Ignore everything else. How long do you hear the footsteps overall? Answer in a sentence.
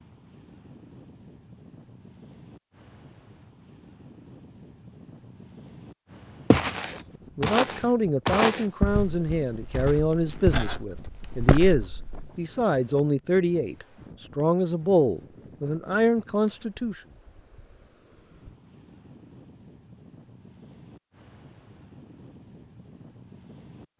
You can hear the footsteps for 6 seconds altogether.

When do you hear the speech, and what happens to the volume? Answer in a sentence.
You can hear the speech from 7.3 to 17.0 s, at a steady volume.